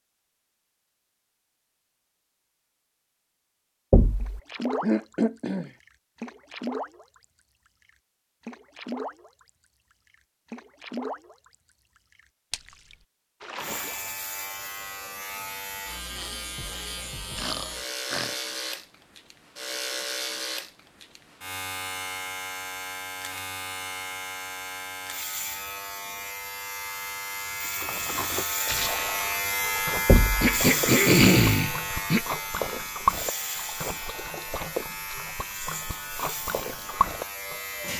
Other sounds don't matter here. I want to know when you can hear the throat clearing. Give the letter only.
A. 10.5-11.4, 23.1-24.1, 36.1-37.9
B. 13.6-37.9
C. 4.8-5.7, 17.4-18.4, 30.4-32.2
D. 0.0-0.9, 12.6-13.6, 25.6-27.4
C.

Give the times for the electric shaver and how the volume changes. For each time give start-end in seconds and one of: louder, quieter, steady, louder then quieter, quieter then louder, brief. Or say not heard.
13.6-37.9 louder then quieter.